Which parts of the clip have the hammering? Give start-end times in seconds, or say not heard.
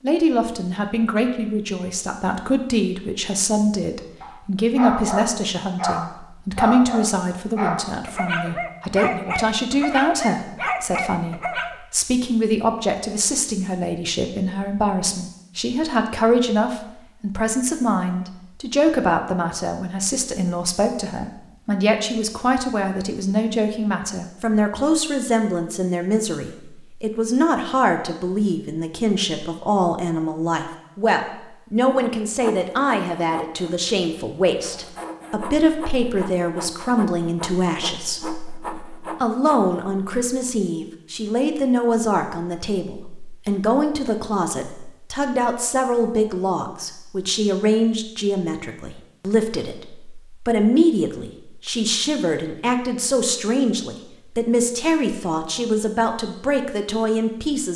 not heard.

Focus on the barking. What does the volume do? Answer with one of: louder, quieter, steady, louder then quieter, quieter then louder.
steady.